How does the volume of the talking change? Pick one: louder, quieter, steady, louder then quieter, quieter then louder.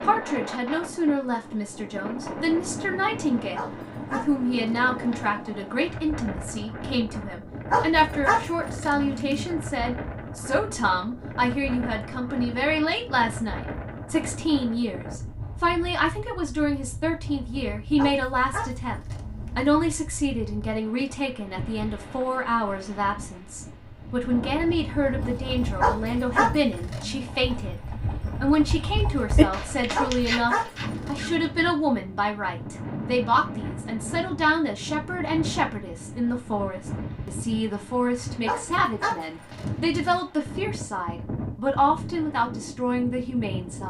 steady.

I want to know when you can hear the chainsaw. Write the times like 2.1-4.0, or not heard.
not heard.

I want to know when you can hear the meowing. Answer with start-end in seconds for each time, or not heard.
not heard.